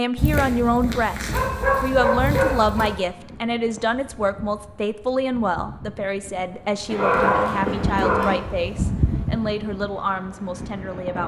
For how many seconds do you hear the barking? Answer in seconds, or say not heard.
4 s.